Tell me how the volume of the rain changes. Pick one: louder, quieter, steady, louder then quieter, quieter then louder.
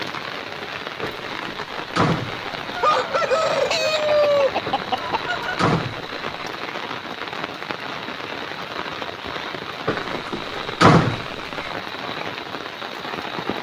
steady.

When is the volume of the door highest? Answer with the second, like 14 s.
11 s.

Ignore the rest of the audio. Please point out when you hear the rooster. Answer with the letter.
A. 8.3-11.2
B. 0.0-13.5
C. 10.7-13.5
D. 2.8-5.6
D.